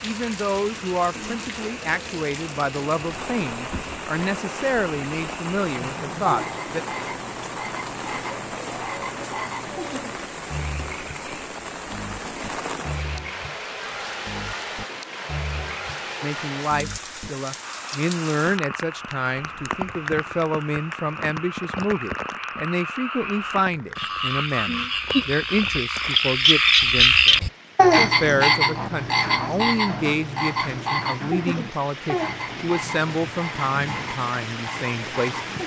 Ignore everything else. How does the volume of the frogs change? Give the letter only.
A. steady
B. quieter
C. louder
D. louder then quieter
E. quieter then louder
D.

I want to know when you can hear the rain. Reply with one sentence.
The rain can be heard from 0.0 to 35.6 s.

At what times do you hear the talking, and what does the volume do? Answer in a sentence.
The talking can be heard from 0.0 to 6.8 s, at a steady volume; and from 16.2 to 35.5 s, at a steady volume.